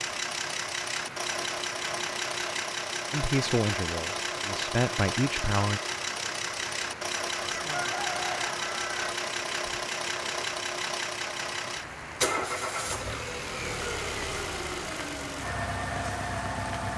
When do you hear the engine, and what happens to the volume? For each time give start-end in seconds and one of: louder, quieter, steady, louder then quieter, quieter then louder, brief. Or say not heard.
0.0-16.9 steady.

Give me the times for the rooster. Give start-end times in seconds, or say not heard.
7.4-9.2.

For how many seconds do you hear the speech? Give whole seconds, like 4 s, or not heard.
3 s.